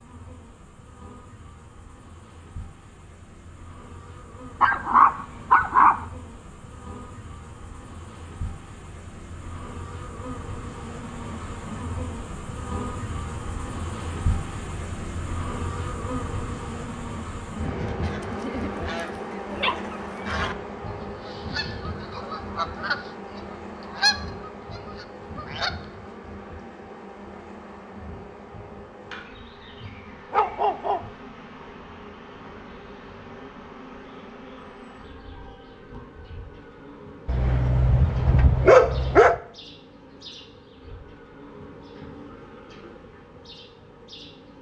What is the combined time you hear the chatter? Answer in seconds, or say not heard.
not heard.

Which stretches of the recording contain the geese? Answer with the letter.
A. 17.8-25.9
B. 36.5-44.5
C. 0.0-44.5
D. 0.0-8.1
A.